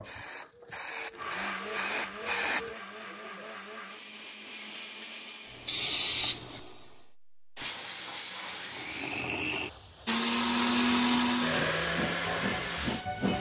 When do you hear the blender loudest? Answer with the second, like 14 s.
11 s.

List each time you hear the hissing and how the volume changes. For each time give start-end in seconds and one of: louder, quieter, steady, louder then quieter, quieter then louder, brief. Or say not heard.
0.0-2.8 brief
5.5-13.3 quieter then louder.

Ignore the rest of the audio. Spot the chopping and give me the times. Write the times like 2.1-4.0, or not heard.
not heard.